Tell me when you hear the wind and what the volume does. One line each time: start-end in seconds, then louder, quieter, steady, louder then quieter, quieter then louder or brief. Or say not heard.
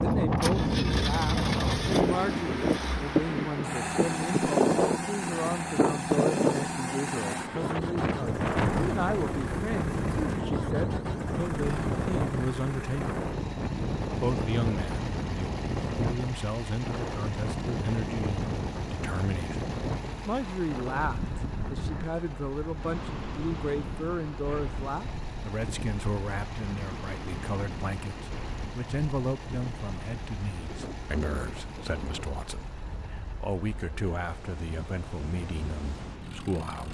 0.0-36.8 quieter.